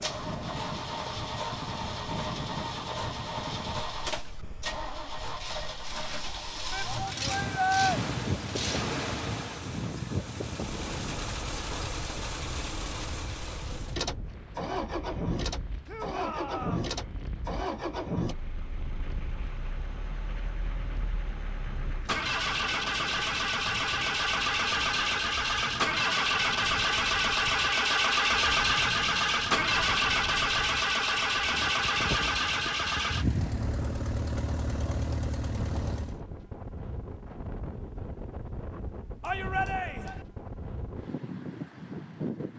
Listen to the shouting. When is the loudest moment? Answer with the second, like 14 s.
8 s.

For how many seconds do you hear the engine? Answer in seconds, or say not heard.
36 s.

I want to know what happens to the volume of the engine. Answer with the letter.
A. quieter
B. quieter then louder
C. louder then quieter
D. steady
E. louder
E.